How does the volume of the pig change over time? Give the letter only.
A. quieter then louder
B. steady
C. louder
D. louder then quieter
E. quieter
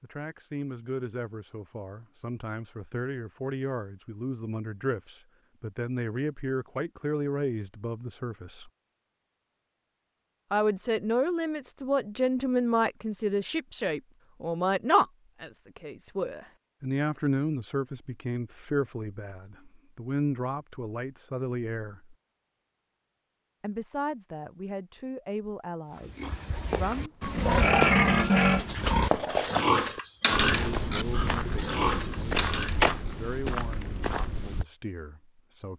D.